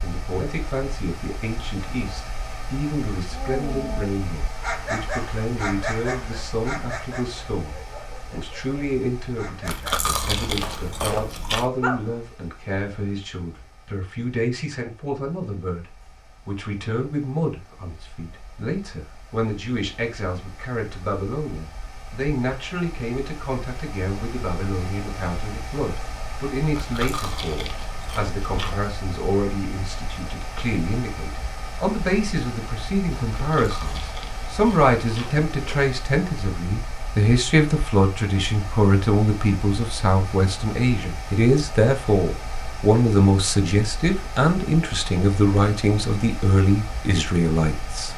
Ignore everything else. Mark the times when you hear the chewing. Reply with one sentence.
The chewing can be heard from 9.7 to 11.7 s, from 26.7 to 28.9 s and from 33.5 to 35.9 s.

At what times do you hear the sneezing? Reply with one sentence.
You can't hear the sneezing here.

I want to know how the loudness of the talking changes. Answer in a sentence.
The volume of the talking goes up.